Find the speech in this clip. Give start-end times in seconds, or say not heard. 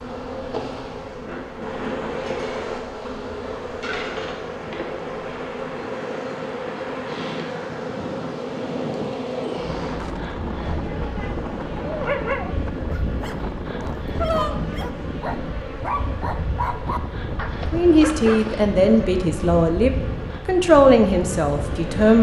17.7-22.1.